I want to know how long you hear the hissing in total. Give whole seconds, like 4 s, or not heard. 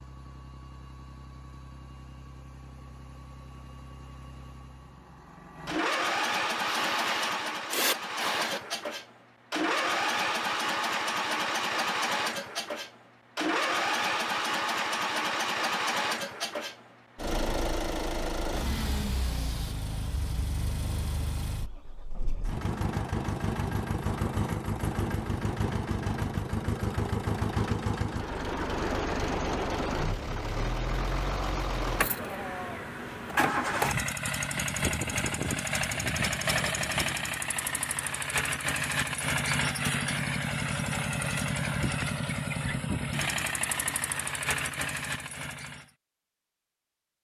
2 s.